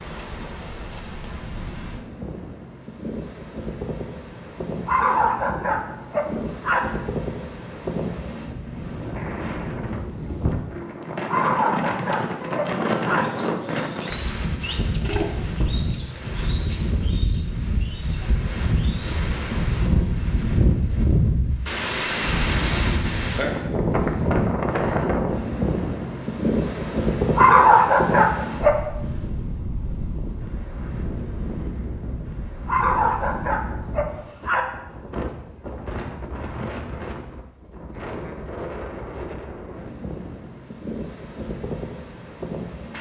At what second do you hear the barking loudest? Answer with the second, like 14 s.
28 s.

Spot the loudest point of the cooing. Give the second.
15 s.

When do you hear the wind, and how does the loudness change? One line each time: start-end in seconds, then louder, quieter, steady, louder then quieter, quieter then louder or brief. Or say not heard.
0.0-42.9 louder then quieter.